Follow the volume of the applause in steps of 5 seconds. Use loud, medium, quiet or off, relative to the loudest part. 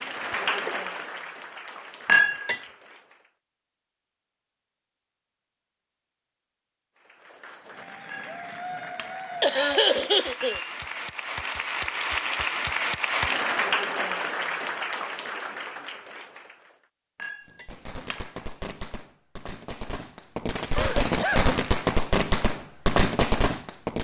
medium, medium, loud, medium, off.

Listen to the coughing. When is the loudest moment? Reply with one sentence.
The volume of the coughing peaks at 10 seconds.